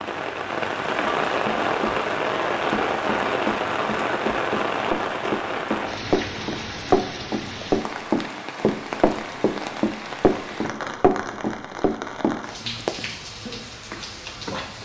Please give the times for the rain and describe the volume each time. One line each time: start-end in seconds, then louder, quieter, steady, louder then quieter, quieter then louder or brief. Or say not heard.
0.0-14.7 quieter.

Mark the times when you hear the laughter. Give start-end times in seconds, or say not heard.
not heard.